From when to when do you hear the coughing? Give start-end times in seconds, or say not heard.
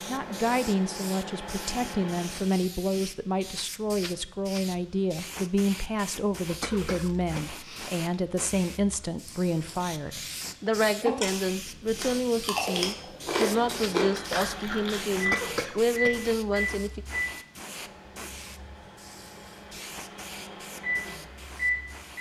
6.6-8.1, 15.3-16.3.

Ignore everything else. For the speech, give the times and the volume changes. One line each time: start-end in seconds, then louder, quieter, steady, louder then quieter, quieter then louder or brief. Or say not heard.
0.1-17.0 steady.